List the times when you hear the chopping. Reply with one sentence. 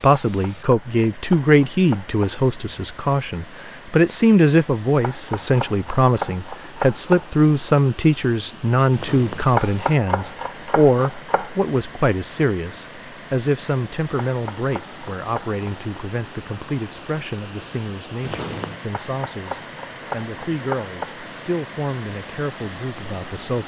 You can hear the chopping from 0.2 to 2.2 s, from 5.0 to 7.3 s, from 9.5 to 11.5 s, from 14.2 to 16.0 s and from 18.9 to 21.2 s.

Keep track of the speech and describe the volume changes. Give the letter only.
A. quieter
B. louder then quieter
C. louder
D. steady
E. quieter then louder
A.